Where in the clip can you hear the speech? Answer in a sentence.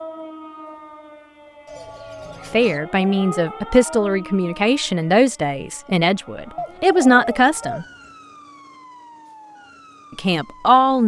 The speech can be heard from 2.5 to 7.8 s and from 10.2 to 11.0 s.